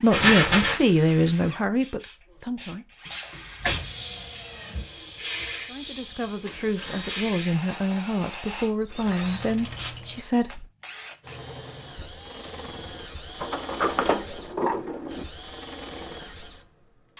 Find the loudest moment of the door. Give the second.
14 s.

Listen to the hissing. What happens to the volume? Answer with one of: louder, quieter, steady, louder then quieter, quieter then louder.
steady.